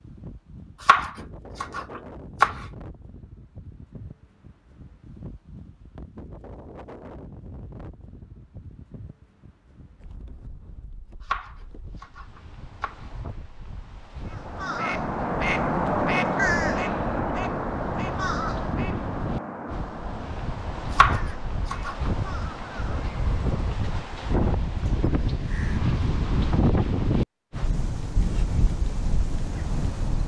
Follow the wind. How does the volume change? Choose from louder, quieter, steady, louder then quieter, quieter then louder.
louder.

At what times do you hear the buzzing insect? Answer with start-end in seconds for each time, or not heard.
not heard.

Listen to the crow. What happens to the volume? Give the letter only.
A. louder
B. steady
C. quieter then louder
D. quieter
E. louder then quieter
D.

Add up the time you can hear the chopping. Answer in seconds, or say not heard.
5 s.